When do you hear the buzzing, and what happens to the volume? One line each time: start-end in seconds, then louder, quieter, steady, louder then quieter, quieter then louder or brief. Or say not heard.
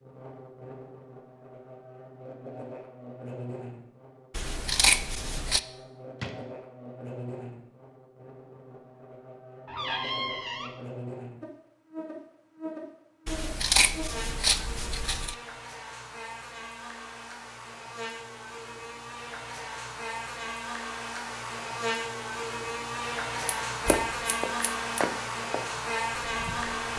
0.0-26.9 louder.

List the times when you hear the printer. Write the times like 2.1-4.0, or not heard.
not heard.